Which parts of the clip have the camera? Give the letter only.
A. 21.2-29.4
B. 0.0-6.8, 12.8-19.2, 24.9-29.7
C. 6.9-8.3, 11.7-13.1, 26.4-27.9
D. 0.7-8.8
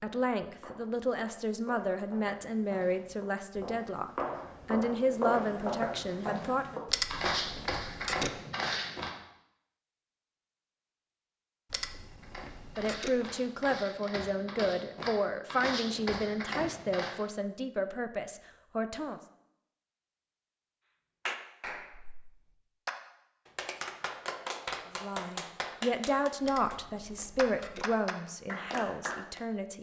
C.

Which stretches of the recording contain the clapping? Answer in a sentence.
The clapping can be heard from 21.2 to 29.4 s.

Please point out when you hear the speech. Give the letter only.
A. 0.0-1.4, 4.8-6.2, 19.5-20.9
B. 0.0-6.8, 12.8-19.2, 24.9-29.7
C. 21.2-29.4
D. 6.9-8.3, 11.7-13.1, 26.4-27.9
B.